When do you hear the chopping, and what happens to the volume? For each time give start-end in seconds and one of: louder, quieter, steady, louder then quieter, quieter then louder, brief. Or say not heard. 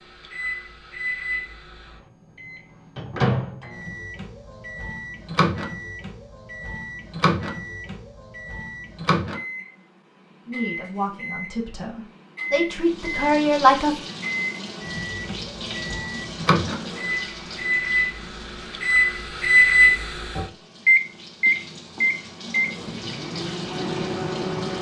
not heard.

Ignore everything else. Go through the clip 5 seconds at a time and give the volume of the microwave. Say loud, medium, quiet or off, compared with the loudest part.
medium, medium, medium, loud, loud.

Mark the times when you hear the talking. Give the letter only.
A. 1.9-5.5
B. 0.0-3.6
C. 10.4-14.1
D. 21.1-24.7
C.